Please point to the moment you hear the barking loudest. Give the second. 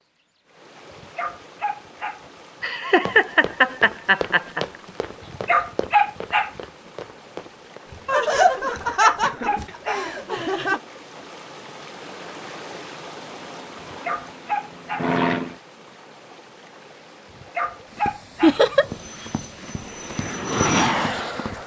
6 s.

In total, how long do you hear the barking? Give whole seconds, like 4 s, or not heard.
6 s.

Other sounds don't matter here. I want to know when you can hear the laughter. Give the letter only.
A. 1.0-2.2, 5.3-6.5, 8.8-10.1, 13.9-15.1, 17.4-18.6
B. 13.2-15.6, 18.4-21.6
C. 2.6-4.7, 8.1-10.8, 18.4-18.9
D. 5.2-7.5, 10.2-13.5
C.